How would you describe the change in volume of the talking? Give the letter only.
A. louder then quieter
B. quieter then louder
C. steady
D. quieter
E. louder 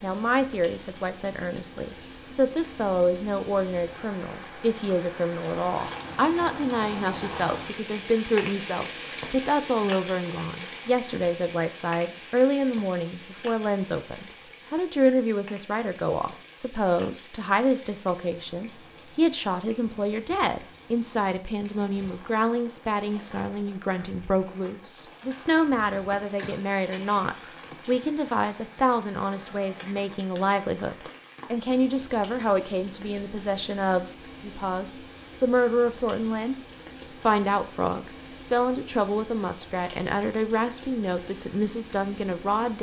C.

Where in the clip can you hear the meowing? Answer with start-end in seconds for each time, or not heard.
not heard.